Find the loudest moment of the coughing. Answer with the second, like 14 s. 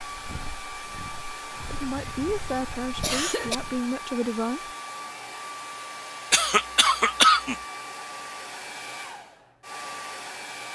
7 s.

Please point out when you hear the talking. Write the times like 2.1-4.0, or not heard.
1.7-4.8.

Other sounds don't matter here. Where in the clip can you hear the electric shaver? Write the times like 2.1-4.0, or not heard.
not heard.